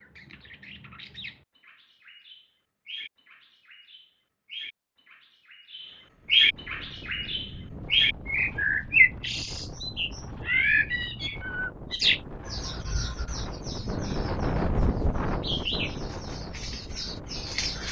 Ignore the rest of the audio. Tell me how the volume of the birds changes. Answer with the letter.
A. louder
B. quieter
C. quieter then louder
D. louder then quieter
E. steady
D.